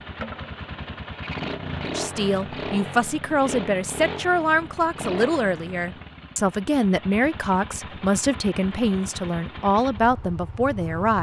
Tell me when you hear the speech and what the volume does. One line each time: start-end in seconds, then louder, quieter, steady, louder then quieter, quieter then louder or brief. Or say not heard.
1.9-11.1 steady.